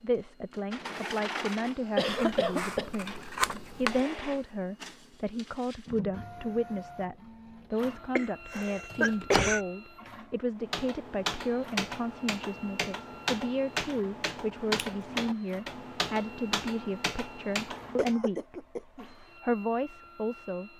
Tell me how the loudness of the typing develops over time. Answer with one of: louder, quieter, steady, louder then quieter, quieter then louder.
steady.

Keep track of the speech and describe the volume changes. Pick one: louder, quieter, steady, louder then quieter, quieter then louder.
steady.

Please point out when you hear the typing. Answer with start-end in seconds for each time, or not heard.
10.6-18.1.